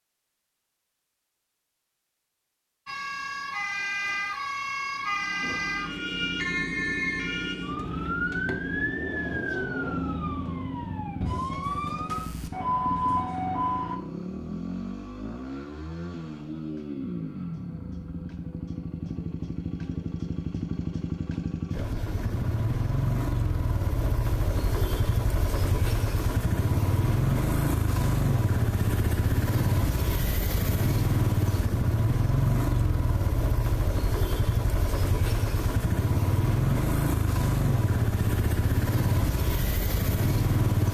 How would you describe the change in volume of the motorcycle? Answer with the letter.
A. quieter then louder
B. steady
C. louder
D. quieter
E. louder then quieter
C.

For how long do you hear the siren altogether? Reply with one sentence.
The siren can be heard for 11 seconds in total.